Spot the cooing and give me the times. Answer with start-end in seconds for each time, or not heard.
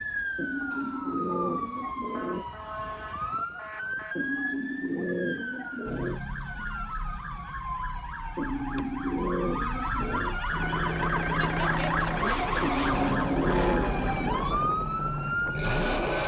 0.3-2.5, 4.2-6.2, 8.3-10.4, 12.6-14.5.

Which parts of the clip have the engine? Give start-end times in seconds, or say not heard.
10.4-16.2.